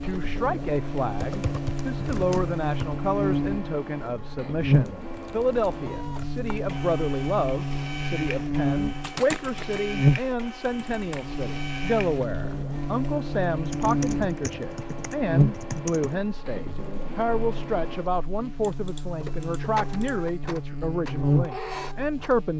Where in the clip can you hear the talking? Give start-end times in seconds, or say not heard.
0.0-22.5.